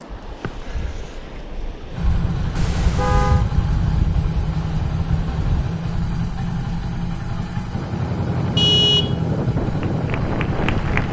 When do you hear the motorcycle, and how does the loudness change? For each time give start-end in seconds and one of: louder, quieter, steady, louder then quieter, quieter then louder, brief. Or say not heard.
1.9-11.0 steady.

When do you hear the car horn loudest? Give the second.
9 s.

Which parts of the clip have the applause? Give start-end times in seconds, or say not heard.
9.7-11.0.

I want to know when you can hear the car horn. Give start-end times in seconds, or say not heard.
2.5-3.5, 8.6-9.2.